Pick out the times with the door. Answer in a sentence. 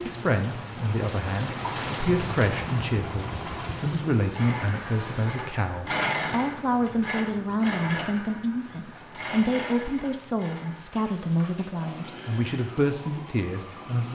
The door can't be heard in this clip.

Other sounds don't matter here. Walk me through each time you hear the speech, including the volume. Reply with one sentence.
You can hear the speech from 0.0 to 14.0 s, at a steady volume.